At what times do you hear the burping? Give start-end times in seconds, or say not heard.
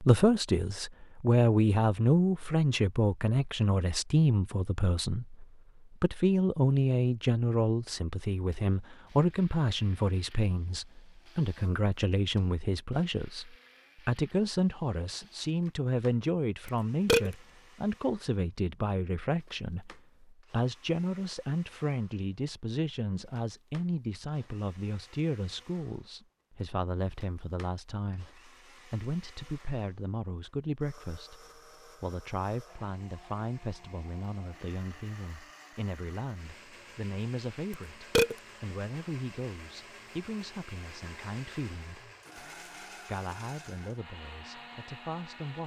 16.6-17.3, 37.7-38.4.